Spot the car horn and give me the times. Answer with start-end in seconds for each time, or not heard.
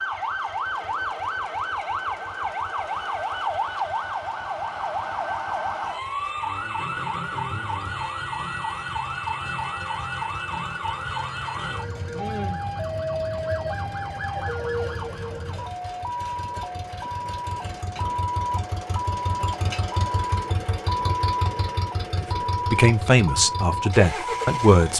not heard.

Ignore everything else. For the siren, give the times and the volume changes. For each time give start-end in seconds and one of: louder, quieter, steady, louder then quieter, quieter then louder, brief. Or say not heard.
0.0-24.9 steady.